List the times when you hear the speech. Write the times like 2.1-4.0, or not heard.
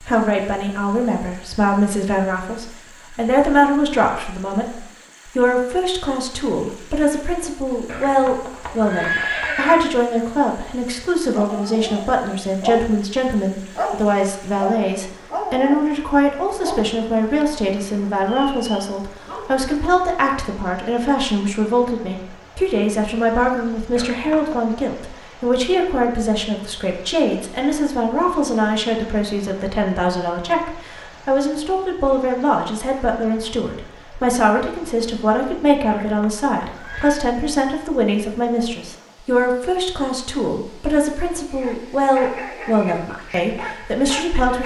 0.1-44.6.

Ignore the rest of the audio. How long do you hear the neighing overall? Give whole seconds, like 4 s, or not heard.
4 s.